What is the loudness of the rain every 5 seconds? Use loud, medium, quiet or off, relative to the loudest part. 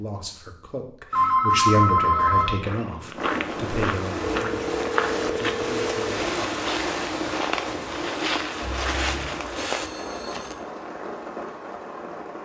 loud, loud, medium.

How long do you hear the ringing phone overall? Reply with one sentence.
You can hear the ringing phone for 5 seconds altogether.